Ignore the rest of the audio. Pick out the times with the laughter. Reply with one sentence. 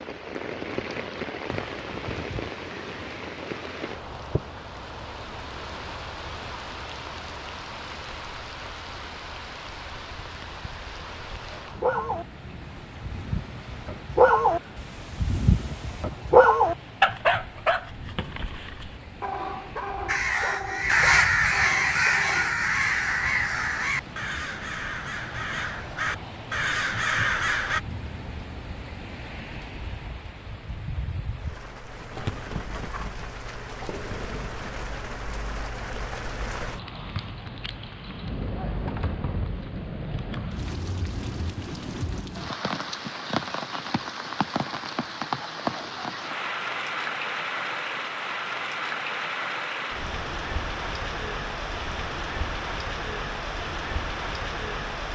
You can't hear the laughter here.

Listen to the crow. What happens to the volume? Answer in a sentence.
The volume of the crow goes down, then up.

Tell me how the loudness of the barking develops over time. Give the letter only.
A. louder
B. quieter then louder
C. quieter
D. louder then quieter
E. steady
D.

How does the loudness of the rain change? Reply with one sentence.
The volume of the rain goes down, then up.